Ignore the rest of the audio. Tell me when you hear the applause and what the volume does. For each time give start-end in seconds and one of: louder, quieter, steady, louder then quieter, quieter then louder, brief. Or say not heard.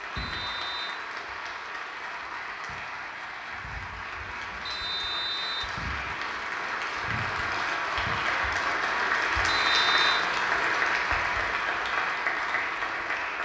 0.0-13.3 louder.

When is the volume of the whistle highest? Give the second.
10 s.